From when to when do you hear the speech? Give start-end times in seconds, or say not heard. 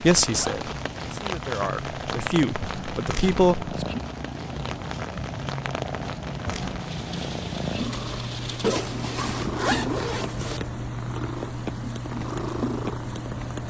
0.0-3.9.